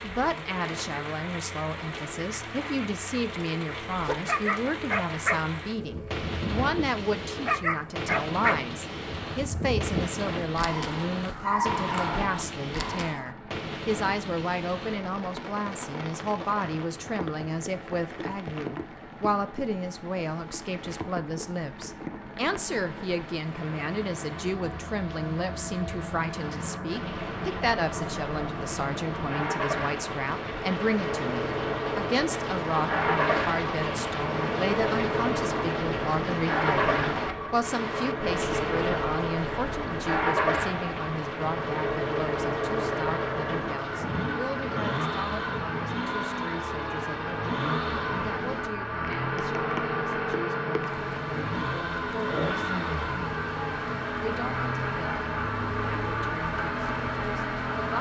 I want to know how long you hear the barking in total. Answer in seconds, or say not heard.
9 s.